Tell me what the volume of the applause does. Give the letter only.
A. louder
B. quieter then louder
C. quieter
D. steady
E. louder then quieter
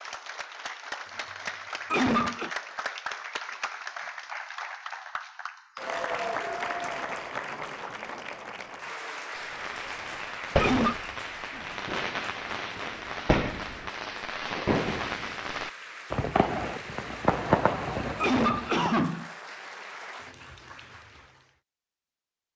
C.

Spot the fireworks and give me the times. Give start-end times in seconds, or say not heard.
9.3-18.9.